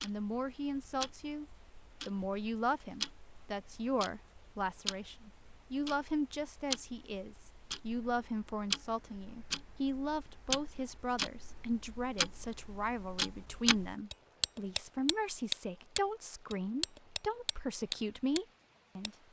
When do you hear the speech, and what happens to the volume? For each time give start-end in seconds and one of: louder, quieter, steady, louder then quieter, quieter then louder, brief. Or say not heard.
0.0-1.4 brief
2.0-19.1 steady.